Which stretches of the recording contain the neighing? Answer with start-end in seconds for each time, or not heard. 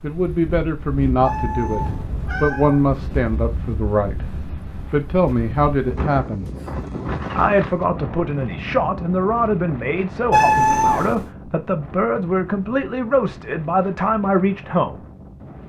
not heard.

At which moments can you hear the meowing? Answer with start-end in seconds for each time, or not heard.
1.2-2.9, 10.3-11.2.